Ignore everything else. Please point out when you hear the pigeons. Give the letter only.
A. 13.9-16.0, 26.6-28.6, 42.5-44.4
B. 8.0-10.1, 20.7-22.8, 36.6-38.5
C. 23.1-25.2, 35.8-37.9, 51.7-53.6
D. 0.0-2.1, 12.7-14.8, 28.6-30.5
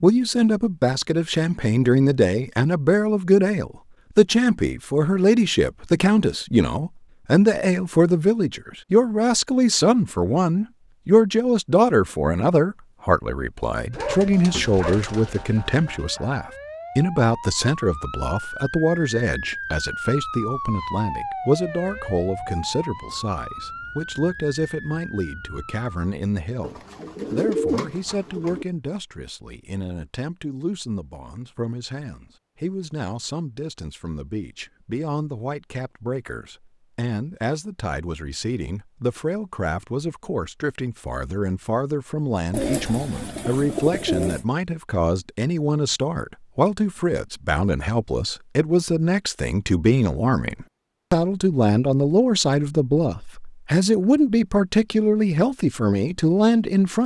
A.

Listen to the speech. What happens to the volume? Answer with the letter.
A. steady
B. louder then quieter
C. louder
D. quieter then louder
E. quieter
D.